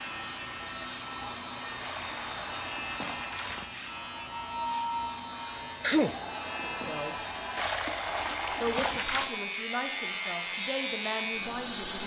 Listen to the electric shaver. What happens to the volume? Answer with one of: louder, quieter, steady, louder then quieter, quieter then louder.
louder.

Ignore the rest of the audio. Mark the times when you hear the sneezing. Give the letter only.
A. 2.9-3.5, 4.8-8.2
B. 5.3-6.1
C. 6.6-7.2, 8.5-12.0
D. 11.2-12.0
B.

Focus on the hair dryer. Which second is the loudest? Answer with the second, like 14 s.
5 s.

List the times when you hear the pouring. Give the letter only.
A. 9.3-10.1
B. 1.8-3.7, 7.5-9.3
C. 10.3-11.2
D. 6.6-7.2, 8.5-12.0
B.